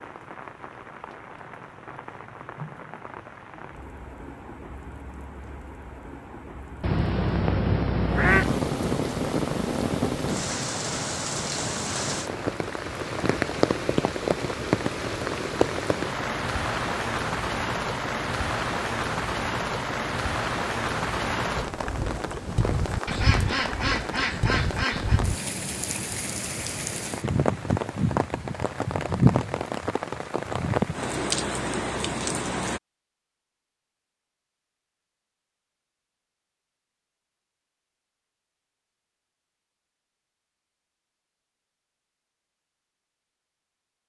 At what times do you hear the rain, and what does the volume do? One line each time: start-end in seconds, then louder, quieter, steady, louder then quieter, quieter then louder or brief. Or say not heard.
0.0-32.8 louder.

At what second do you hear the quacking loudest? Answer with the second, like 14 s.
8 s.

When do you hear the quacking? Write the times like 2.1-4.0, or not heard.
6.8-8.6, 23.1-25.2.